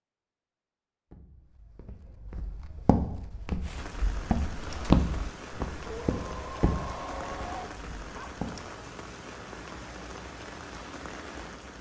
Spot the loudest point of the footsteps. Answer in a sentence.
The volume of the footsteps peaks at 5 seconds.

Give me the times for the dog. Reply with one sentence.
The dog can be heard from 5.8 to 8.4 s.